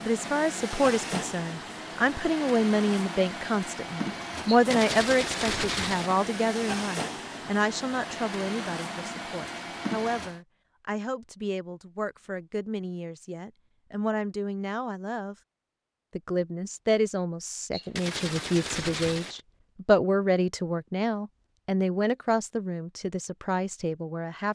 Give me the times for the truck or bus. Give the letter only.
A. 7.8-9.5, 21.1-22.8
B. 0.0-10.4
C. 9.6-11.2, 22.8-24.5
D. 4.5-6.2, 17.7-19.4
B.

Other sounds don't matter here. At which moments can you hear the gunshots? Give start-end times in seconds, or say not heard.
4.5-6.2, 17.7-19.4.